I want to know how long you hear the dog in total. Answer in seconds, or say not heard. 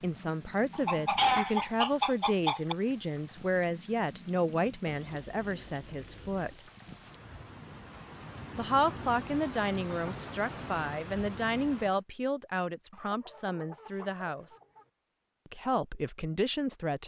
not heard.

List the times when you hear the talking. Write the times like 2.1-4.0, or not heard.
0.0-6.7, 8.6-14.6, 15.4-17.0.